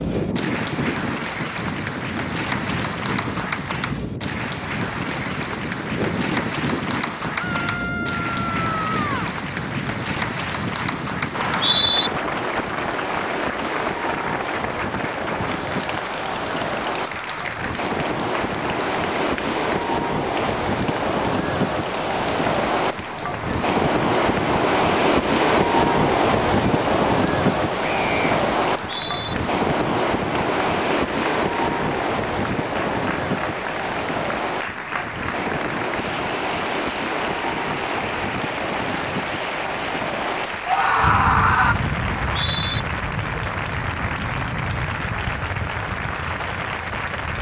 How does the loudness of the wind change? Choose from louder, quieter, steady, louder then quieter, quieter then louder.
louder then quieter.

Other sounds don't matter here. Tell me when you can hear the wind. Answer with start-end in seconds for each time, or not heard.
0.0-47.3.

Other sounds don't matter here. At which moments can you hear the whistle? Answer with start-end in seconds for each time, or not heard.
11.3-12.1, 28.8-29.4, 42.0-42.8.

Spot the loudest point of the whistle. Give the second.
12 s.